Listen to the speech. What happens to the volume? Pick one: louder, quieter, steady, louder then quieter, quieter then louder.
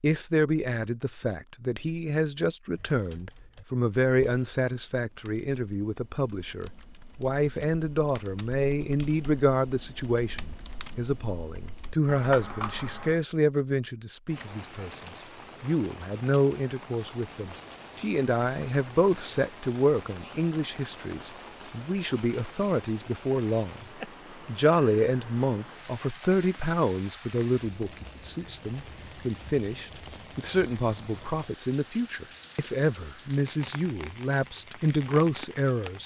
steady.